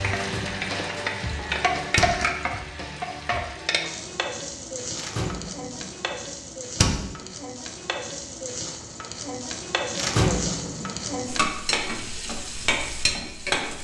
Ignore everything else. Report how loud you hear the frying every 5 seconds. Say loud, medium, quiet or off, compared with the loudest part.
loud, medium, loud.